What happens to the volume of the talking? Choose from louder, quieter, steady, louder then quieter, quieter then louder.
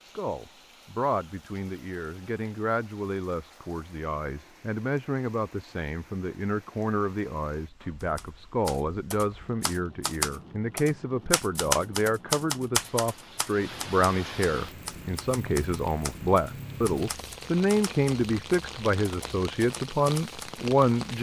louder.